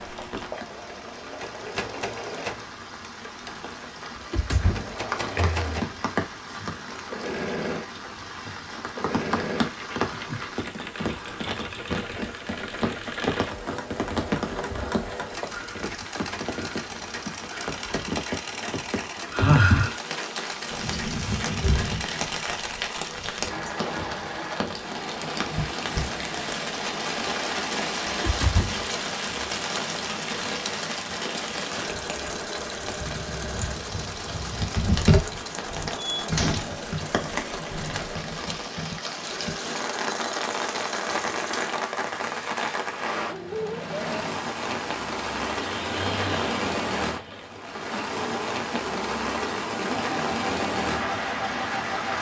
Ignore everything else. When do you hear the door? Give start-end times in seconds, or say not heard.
4.2-5.7, 28.1-28.9, 36.1-36.8.